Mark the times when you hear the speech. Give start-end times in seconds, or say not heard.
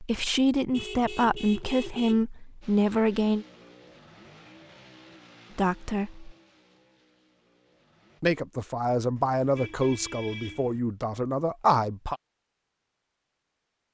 0.0-3.5, 5.5-6.3, 8.2-12.2.